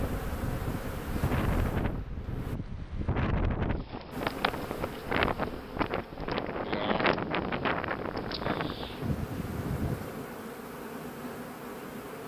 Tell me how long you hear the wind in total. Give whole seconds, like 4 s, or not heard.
10 s.